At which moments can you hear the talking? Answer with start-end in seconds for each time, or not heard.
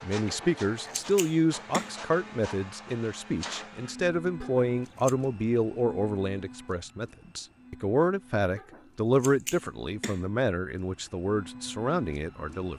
0.0-12.7.